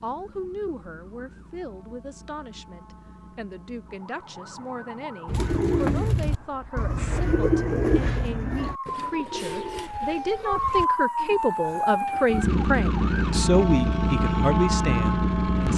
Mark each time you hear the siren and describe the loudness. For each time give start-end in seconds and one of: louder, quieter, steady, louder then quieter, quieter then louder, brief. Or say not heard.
0.0-15.7 louder.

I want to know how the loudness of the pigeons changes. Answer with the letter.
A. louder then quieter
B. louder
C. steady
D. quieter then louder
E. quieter
E.